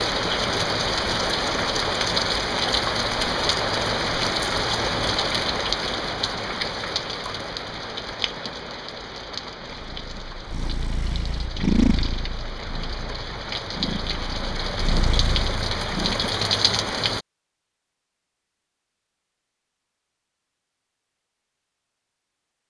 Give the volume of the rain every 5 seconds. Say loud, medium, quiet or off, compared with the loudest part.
loud, medium, medium, loud, off.